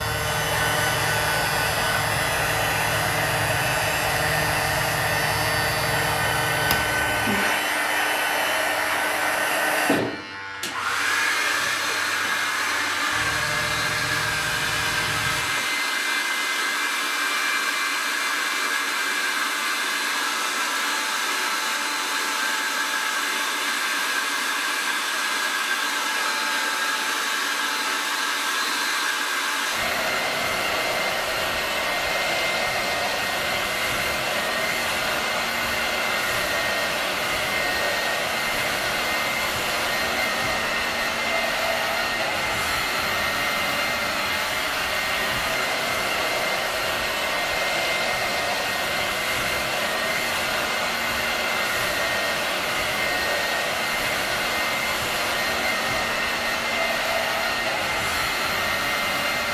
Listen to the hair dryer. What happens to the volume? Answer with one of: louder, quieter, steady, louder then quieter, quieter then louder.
steady.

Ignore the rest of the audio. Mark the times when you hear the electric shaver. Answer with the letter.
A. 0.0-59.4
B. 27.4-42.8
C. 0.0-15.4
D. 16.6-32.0
C.